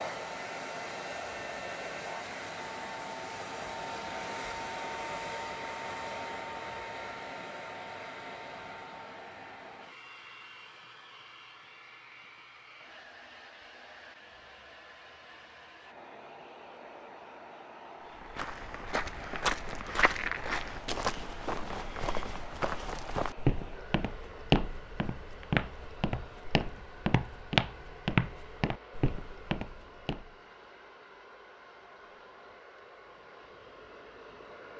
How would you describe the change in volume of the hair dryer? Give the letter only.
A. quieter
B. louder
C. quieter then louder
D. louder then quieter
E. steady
A.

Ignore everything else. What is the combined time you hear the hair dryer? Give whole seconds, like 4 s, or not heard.
35 s.